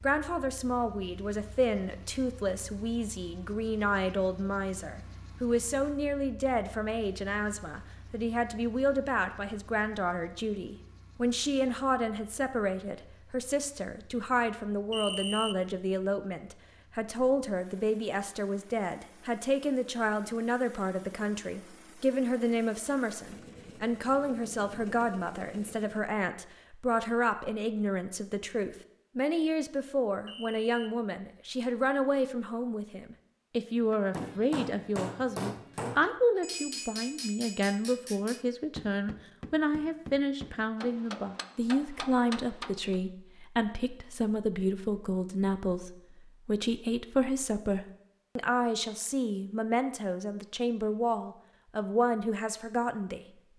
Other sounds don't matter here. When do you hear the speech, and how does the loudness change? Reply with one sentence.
You can hear the speech from 0.0 to 53.2 s, at a steady volume.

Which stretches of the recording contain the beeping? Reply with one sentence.
The beeping can be heard from 14.9 to 15.6 s and from 30.2 to 30.9 s.